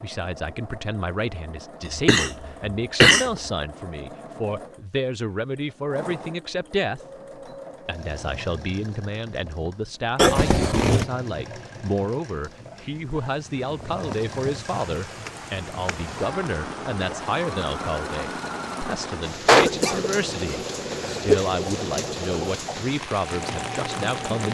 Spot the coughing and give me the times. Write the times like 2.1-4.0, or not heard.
1.9-3.3, 10.2-11.1, 19.4-21.4.